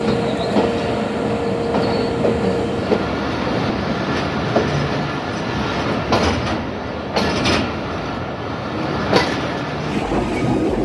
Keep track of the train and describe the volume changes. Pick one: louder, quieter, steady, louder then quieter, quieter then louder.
steady.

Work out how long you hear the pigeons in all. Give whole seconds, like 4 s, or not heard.
not heard.